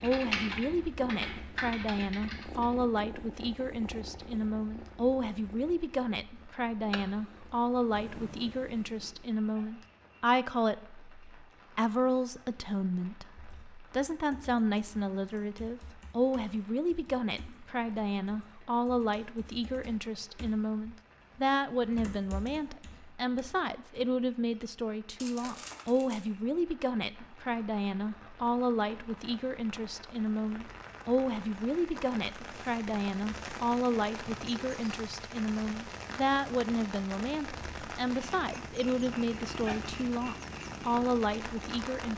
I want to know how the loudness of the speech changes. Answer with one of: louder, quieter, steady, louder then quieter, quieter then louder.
steady.